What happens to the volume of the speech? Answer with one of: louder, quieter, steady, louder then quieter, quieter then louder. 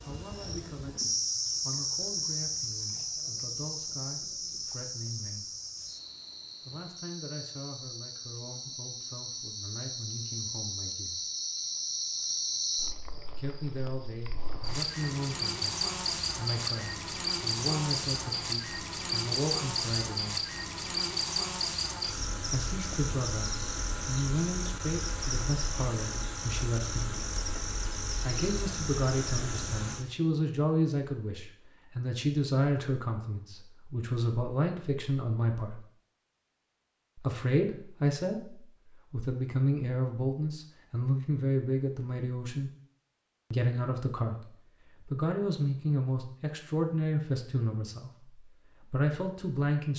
louder.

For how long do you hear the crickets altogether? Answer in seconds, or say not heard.
30 s.